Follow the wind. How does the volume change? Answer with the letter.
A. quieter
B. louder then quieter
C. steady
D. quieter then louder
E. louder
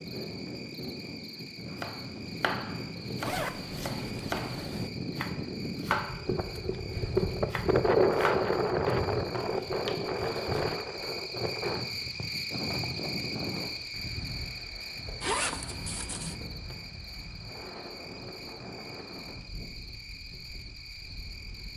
B.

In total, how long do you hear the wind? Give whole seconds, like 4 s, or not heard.
22 s.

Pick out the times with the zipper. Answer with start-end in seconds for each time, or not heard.
3.2-4.9, 15.2-16.4.